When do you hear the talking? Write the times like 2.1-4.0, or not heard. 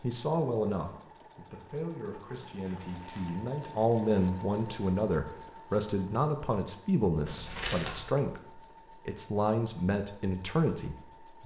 0.0-11.4.